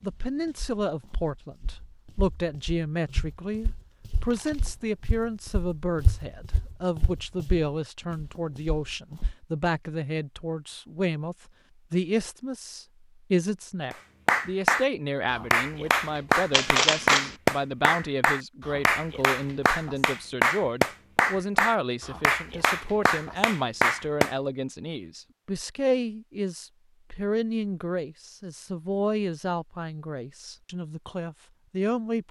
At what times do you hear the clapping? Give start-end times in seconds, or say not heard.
13.9-24.4.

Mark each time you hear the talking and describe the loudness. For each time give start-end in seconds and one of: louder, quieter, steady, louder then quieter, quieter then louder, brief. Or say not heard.
0.0-32.2 steady.